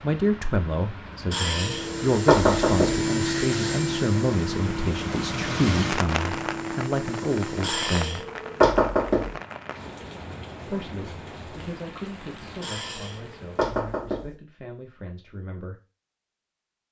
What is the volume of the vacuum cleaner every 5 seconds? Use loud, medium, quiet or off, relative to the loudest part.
loud, medium, off, off.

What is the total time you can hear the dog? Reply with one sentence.
The dog can't be heard in this clip.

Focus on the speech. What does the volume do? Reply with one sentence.
The loudness of the speech goes down.